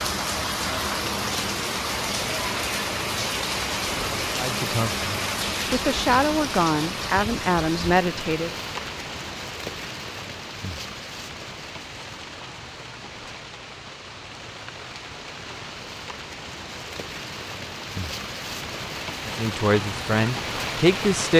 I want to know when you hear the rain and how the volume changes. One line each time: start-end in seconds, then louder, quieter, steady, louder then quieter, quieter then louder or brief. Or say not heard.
0.0-21.3 quieter then louder.